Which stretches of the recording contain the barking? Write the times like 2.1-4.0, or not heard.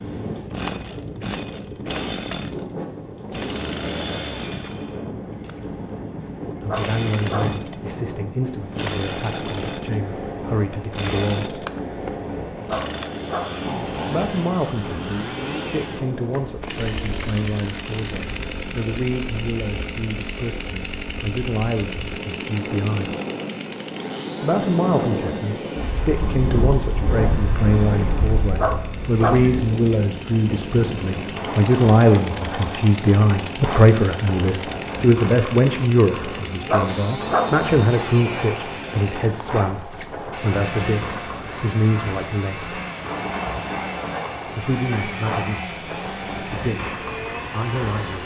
6.5-7.5, 12.6-13.6, 28.4-29.4, 36.5-37.5.